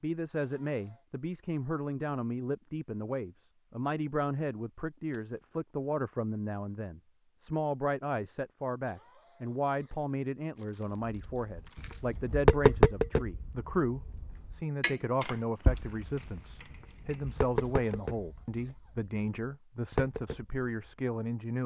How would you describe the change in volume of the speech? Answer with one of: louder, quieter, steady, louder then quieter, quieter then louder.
steady.